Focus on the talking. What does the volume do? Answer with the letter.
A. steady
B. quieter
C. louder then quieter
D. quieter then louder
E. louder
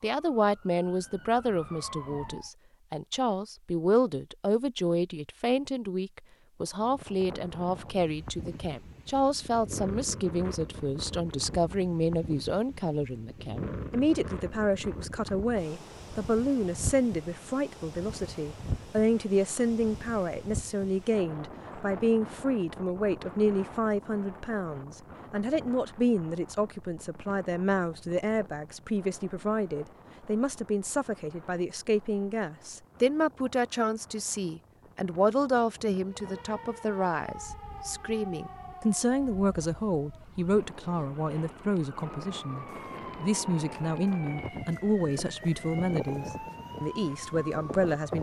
A.